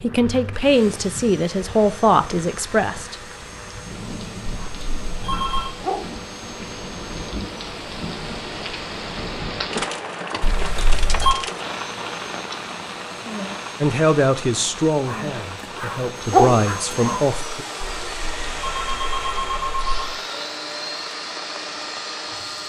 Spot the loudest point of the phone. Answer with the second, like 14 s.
11 s.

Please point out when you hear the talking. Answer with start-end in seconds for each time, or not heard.
0.0-3.1, 13.8-17.6.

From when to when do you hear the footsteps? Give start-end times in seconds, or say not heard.
not heard.